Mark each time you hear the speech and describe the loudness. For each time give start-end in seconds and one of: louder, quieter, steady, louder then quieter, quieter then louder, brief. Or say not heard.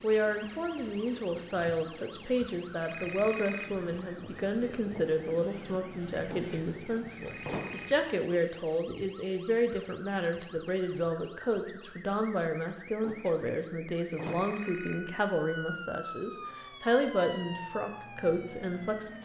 0.0-19.1 steady.